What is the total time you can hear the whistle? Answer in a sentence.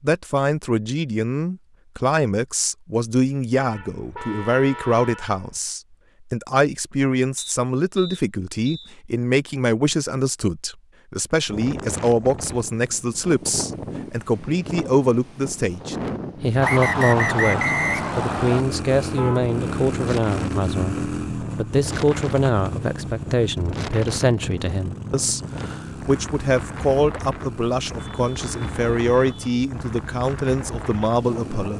You can hear the whistle for 4 seconds altogether.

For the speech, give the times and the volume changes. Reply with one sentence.
You can hear the speech from 0.0 to 31.7 s, at a steady volume.